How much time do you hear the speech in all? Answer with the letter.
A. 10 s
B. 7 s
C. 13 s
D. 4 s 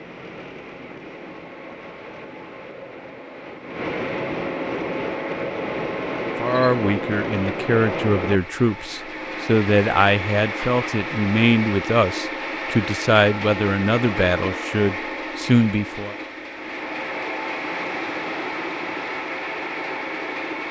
A.